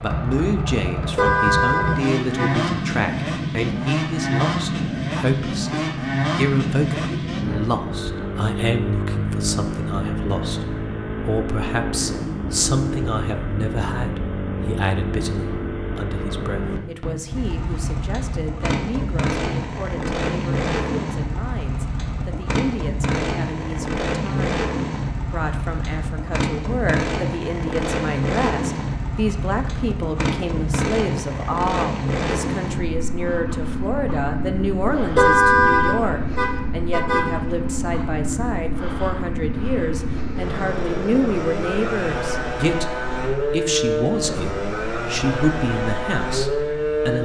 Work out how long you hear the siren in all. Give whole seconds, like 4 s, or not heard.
not heard.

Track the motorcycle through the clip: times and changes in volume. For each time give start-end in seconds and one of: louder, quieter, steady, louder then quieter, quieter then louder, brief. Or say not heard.
0.0-47.2 steady.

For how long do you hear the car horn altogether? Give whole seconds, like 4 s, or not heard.
4 s.